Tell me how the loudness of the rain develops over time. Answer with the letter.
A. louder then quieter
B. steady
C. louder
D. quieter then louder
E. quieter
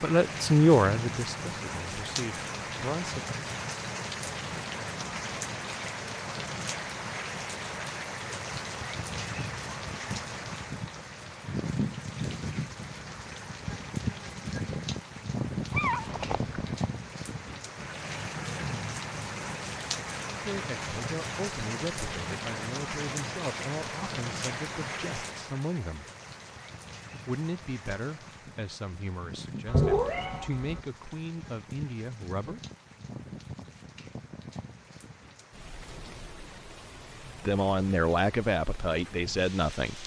E.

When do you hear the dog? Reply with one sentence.
You can't hear the dog here.